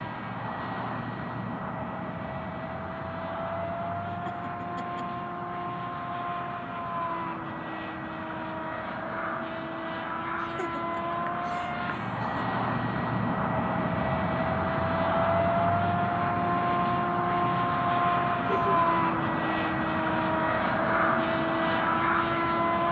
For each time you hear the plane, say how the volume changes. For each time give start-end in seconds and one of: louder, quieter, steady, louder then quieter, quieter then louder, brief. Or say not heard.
0.0-22.8 louder.